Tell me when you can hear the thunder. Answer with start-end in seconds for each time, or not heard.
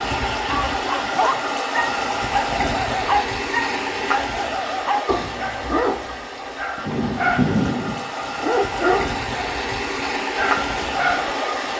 6.8-8.1.